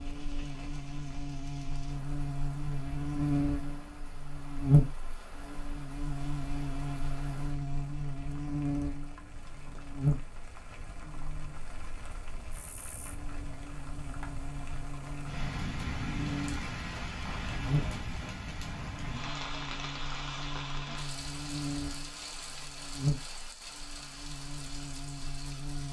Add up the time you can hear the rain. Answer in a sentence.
The rain can be heard for 26 seconds in total.